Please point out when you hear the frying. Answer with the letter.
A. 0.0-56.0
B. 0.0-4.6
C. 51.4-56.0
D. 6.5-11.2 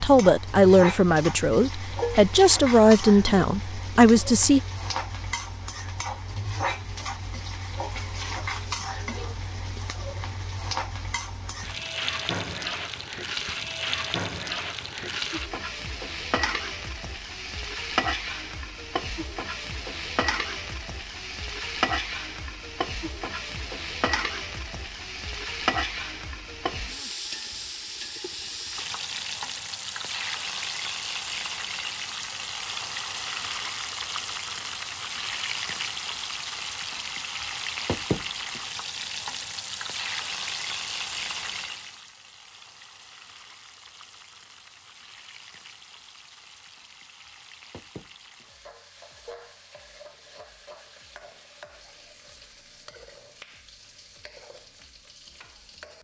A.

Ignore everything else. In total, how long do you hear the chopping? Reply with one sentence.
The chopping can't be heard in this clip.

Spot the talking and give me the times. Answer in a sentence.
The talking can be heard from 0.0 to 4.6 s.